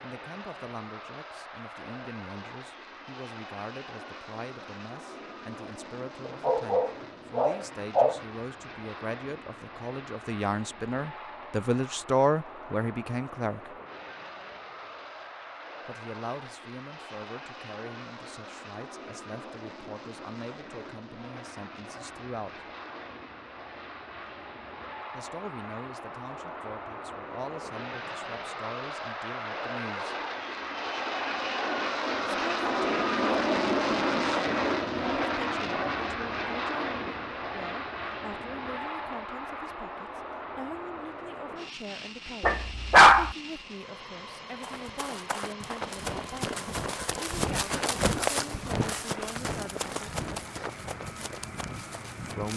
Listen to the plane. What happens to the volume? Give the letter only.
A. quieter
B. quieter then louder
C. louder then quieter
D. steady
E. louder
C.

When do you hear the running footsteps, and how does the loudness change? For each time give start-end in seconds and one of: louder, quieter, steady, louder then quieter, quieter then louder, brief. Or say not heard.
44.4-52.5 louder then quieter.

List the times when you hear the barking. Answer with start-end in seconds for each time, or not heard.
6.4-8.2, 42.4-43.4.